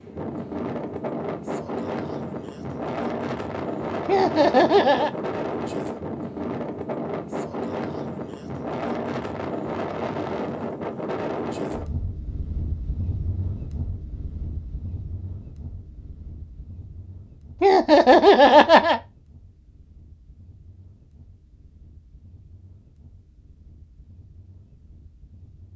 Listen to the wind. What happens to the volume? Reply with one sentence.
The loudness of the wind goes down.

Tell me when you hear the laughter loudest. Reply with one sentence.
The volume of the laughter peaks at 18 seconds.